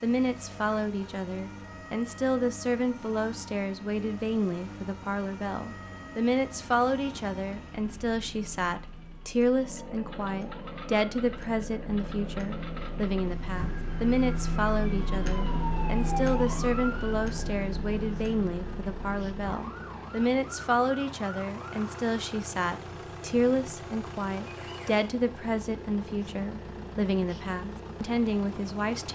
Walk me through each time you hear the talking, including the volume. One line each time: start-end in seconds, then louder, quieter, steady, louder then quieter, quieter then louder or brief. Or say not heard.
0.0-29.1 steady.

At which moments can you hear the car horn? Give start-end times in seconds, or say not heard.
not heard.